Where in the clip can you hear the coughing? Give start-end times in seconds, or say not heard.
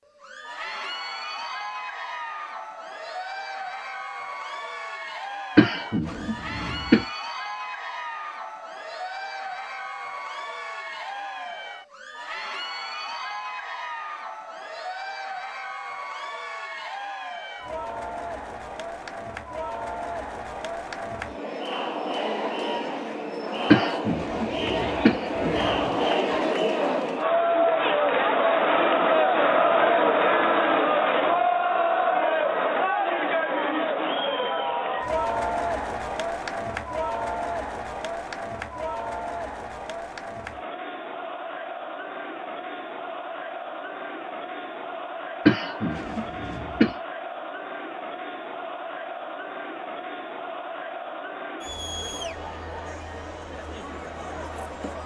5.5-7.0, 23.7-26.4, 45.5-46.9.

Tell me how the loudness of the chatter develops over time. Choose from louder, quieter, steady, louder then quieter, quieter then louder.
louder then quieter.